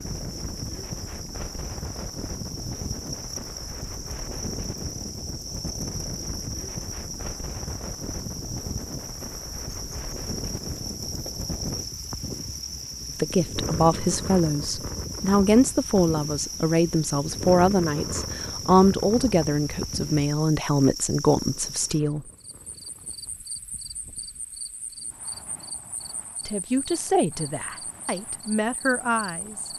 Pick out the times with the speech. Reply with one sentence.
The speech can be heard from 13.2 to 22.2 s and from 26.4 to 29.7 s.